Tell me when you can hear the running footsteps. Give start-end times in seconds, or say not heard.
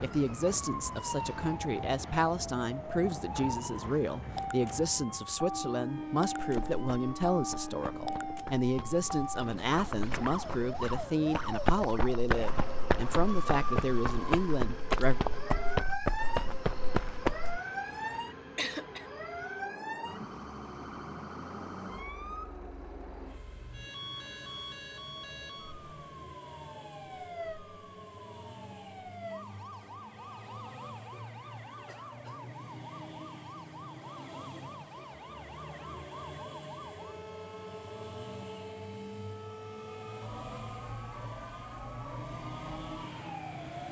6.4-17.6.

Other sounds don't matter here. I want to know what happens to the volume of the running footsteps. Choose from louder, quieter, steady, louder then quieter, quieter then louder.
louder.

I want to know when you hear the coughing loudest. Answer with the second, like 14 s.
19 s.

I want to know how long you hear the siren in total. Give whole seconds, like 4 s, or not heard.
44 s.